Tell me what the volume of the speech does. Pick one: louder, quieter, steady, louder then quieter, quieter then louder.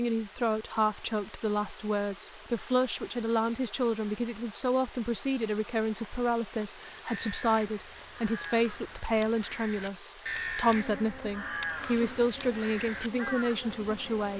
steady.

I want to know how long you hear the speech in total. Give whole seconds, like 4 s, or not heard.
14 s.